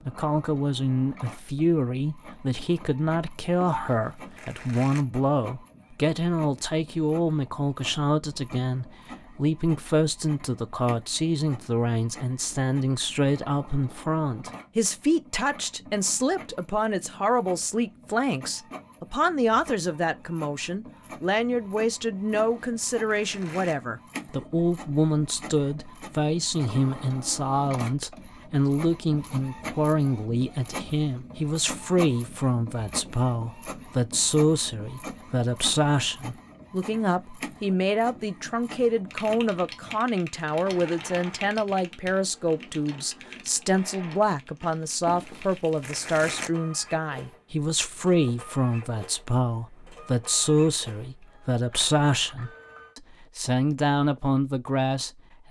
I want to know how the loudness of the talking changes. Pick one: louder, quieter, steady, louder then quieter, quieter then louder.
steady.